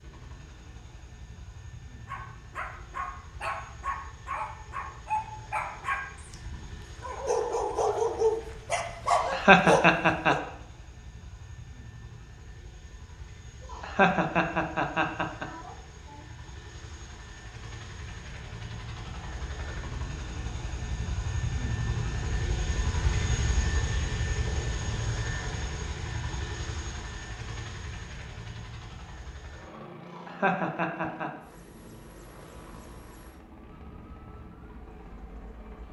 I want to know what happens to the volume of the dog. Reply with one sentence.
The loudness of the dog goes up.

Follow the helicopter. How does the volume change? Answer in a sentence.
The loudness of the helicopter goes up, then down.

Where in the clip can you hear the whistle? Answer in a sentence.
The whistle can't be heard in this clip.